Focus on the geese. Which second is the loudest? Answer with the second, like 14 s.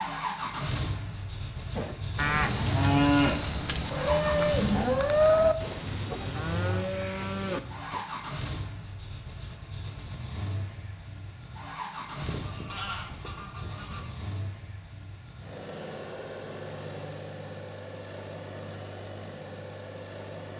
13 s.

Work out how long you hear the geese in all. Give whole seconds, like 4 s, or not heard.
2 s.